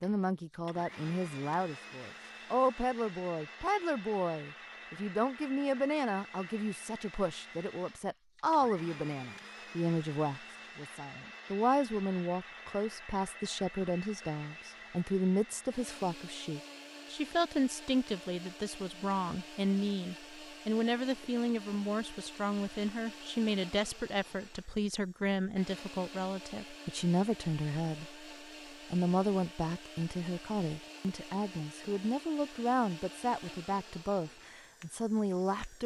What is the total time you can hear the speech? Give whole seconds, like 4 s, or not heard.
35 s.